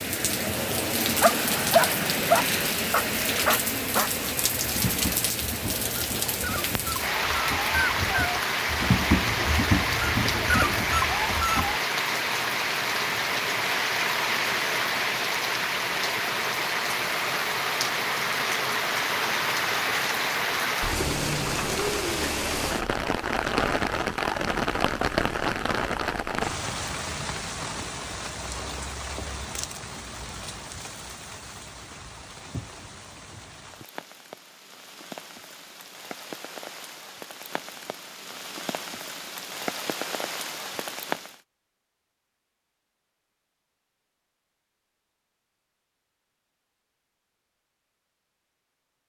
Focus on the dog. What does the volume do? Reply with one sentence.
The loudness of the dog goes down, then up.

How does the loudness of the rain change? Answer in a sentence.
The loudness of the rain goes down.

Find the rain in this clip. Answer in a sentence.
You can hear the rain from 0.0 to 41.4 s.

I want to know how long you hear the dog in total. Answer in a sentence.
You can hear the dog for 11 seconds altogether.